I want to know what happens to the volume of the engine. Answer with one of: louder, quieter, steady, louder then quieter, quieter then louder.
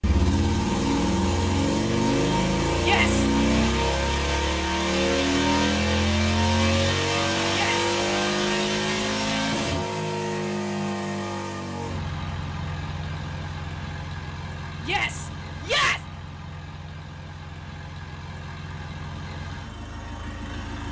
quieter.